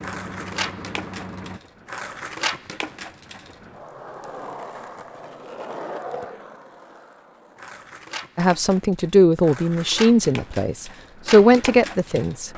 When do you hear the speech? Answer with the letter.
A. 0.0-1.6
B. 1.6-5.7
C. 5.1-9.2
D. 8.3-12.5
D.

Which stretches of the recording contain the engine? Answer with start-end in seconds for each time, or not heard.
0.0-1.6.